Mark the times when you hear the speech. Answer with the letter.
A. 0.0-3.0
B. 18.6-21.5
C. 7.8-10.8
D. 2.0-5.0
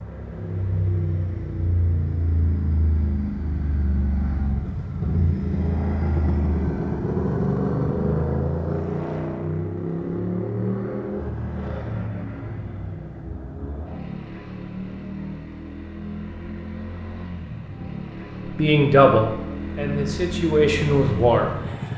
B.